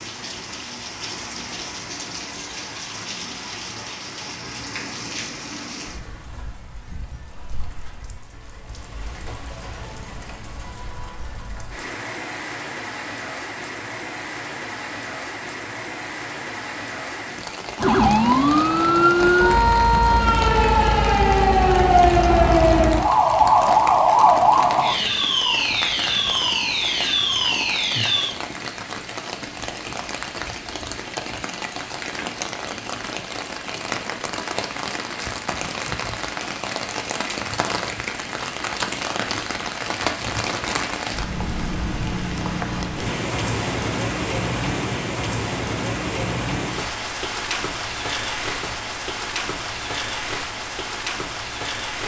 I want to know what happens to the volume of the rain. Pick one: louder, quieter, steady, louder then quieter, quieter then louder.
louder.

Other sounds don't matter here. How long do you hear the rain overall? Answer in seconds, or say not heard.
52 s.